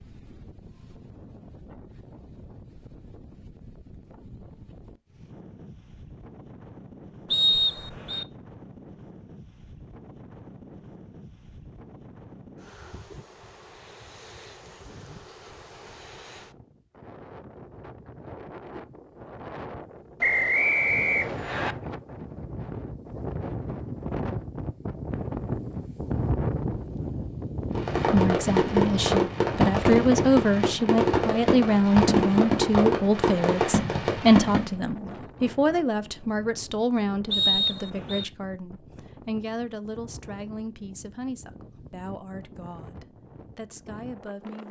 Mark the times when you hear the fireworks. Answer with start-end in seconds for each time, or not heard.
27.8-34.8.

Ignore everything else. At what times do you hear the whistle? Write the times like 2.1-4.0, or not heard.
7.3-8.2, 20.2-21.8, 37.3-38.2.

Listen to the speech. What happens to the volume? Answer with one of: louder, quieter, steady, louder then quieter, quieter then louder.
quieter.